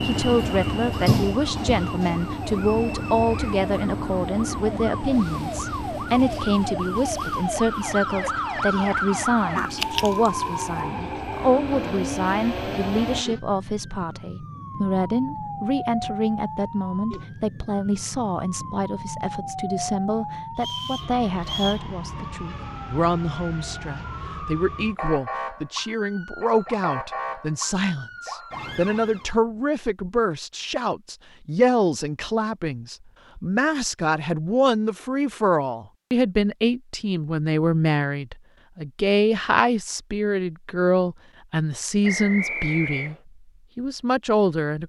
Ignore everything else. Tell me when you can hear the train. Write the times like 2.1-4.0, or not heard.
0.0-13.2.